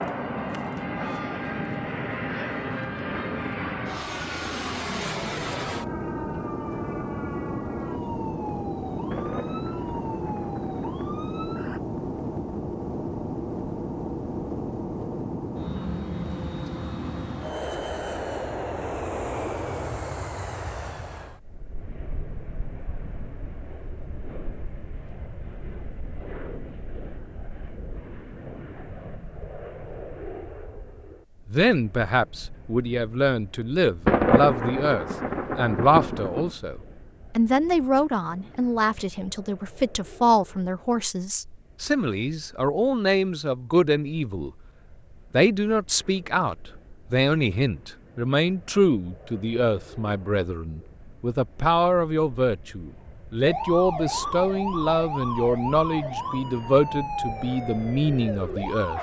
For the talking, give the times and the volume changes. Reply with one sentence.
You can hear the talking from 31.4 to 44.5 s, at a steady volume; and from 45.3 to 58.9 s, at a steady volume.